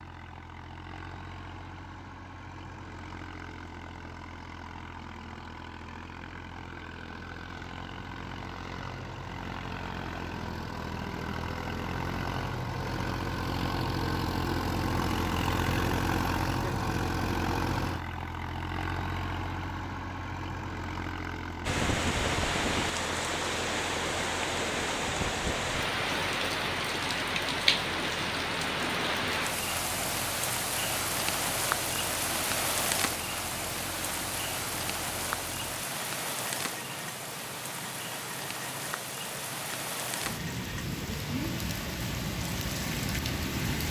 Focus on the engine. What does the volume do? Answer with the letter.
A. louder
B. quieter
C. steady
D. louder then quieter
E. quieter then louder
D.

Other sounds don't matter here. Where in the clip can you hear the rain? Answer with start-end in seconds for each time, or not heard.
21.6-43.8.